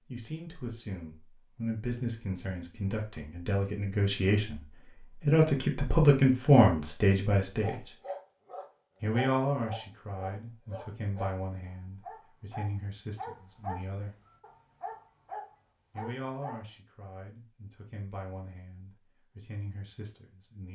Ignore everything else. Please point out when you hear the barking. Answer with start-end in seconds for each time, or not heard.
7.6-16.6.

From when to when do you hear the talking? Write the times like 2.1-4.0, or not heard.
0.1-7.9, 9.0-14.2, 15.9-20.7.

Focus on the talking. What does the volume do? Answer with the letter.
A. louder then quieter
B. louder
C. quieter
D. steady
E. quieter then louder
A.